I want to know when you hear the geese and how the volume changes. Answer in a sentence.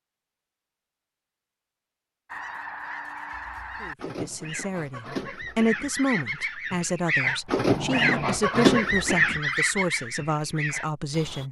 You can hear the geese from 2.3 to 11.4 s, getting louder then quieter.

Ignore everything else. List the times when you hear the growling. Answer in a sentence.
The growling can be heard from 7.2 to 8.4 s.